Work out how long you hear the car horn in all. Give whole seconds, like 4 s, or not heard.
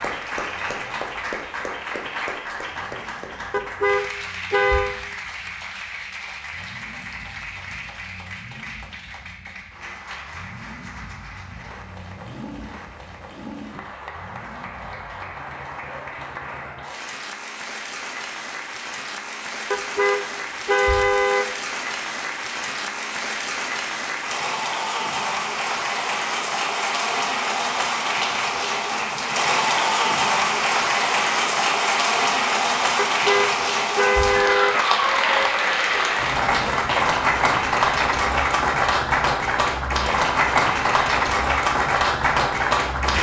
5 s.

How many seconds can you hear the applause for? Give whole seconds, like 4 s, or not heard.
43 s.